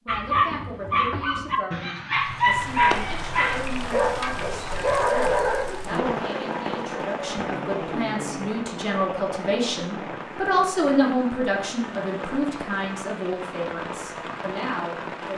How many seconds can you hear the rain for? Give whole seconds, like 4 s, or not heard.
13 s.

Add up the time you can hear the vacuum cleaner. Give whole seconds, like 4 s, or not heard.
not heard.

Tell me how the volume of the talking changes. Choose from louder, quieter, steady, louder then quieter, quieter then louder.
louder then quieter.